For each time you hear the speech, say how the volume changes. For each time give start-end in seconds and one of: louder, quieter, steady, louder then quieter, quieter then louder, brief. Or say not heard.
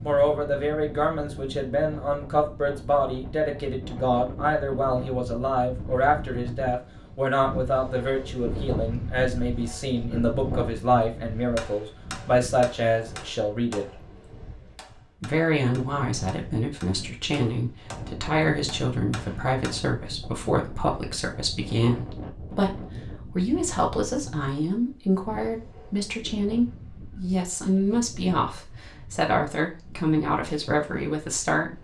0.0-14.0 steady
15.2-31.7 steady.